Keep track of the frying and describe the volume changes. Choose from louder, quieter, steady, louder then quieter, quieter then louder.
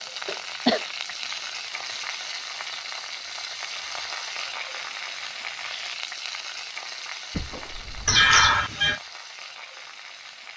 quieter.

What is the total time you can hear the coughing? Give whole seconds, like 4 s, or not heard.
3 s.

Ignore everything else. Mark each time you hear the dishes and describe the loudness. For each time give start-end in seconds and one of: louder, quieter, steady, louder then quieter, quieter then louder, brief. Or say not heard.
not heard.